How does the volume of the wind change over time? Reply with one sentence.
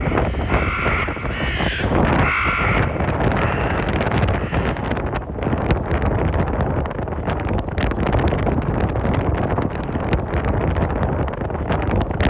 The loudness of the wind stays about the same.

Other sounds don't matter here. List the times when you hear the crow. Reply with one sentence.
You can hear the crow from 0.0 to 4.9 s.